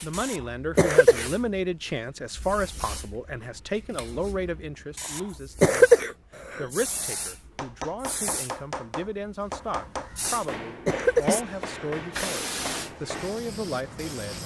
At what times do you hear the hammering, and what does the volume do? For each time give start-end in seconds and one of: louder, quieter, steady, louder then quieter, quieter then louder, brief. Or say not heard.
7.5-13.3 steady.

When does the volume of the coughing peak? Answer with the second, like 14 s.
6 s.